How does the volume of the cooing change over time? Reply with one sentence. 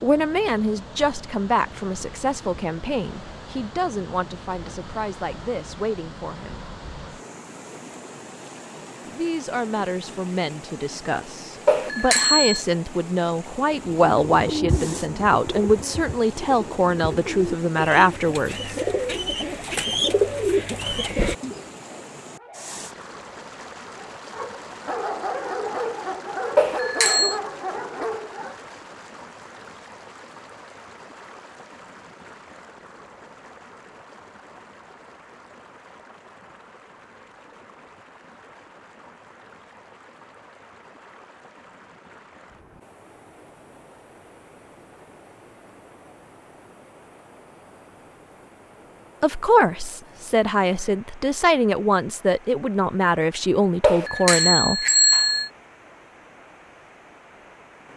The volume of the cooing goes down, then up.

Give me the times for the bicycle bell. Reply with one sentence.
You can hear the bicycle bell from 11.7 to 12.6 s, from 26.6 to 27.4 s and from 53.8 to 55.5 s.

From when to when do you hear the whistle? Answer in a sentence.
The whistle can't be heard in this clip.